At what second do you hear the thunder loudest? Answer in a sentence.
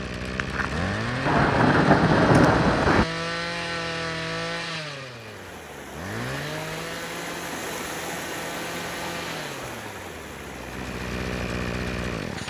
The loudest moment of the thunder is at 2 seconds.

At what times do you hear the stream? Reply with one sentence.
The stream can be heard from 5.1 to 12.4 s.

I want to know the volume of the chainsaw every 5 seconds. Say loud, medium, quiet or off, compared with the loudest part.
loud, medium, loud.